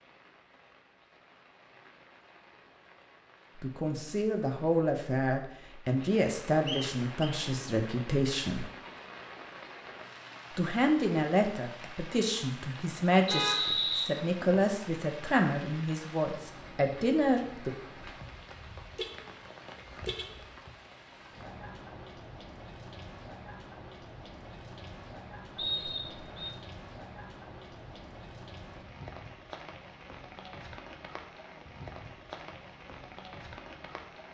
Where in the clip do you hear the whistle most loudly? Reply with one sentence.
The loudest moment of the whistle is at 14 seconds.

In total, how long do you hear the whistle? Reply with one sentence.
The whistle can be heard for 3 seconds in total.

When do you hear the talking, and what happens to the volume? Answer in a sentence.
You can hear the talking from 3.5 to 8.7 s, at a steady volume; and from 10.5 to 17.7 s, at a steady volume.